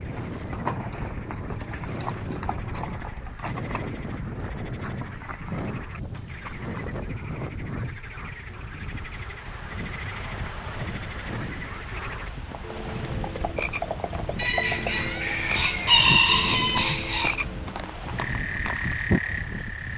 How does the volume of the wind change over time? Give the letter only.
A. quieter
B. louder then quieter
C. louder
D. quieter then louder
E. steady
E.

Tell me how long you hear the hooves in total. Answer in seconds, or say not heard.
14 s.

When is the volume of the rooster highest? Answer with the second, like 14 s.
16 s.